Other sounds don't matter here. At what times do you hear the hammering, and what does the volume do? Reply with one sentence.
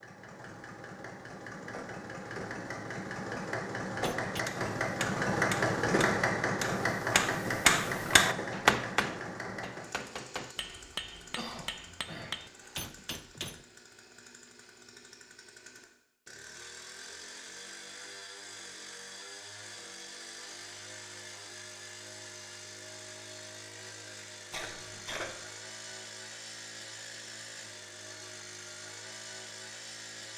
You can hear the hammering from 4.0 to 13.7 s, getting louder then quieter.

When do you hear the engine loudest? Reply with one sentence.
The volume of the engine peaks at 6 seconds.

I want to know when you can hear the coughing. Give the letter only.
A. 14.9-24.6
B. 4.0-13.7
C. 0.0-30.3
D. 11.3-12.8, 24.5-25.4
D.